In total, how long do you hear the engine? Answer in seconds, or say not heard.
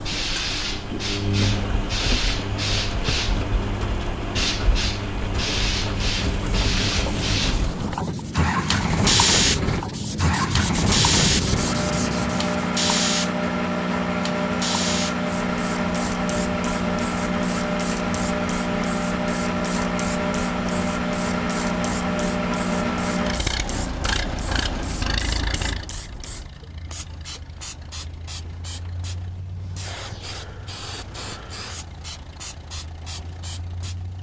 34 s.